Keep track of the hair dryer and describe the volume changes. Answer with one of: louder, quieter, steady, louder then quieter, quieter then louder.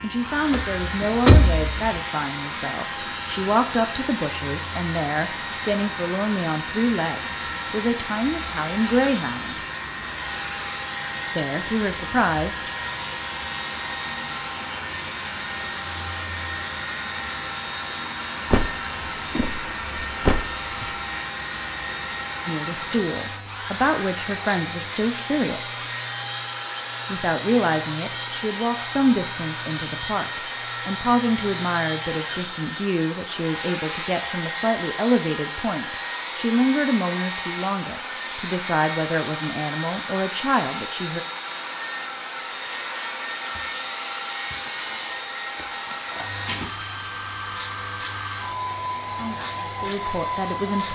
steady.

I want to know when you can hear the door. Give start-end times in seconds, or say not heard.
0.5-2.0, 18.5-20.9, 45.5-46.7.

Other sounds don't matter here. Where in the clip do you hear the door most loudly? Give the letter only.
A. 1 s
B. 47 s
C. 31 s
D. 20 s
A.